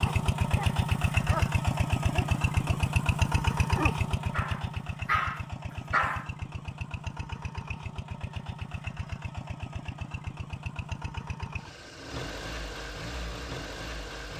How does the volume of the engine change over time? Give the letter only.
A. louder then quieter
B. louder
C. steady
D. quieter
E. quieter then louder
D.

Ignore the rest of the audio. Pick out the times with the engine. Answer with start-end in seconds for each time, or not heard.
0.0-14.3.